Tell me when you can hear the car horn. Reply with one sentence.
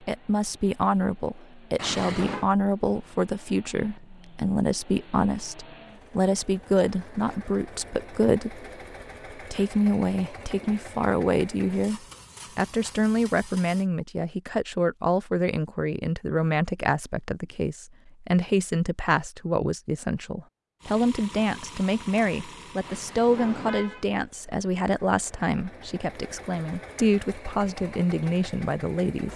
You can hear the car horn from 1.8 to 2.5 s and from 22.8 to 24.1 s.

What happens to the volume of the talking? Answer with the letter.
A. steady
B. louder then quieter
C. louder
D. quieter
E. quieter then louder
A.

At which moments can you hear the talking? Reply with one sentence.
You can hear the talking from 0.1 to 8.7 s and from 9.3 to 29.3 s.